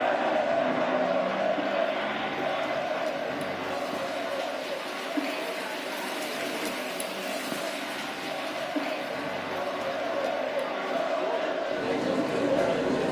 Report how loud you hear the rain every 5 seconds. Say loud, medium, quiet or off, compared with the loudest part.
medium, loud, medium.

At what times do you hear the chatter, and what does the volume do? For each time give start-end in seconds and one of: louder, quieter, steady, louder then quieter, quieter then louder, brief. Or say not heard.
0.0-13.0 quieter then louder.